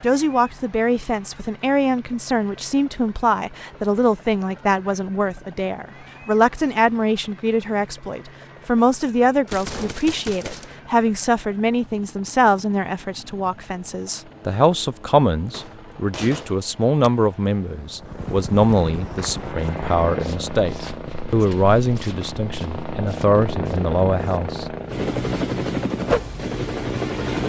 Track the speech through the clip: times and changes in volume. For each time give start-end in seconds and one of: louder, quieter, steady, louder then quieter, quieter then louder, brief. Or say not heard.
0.0-24.8 steady.